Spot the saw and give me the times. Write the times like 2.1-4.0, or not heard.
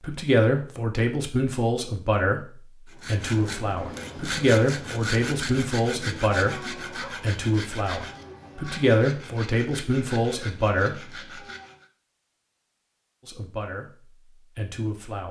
2.9-11.8.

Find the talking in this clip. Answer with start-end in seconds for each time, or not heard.
0.0-11.1, 13.2-15.2.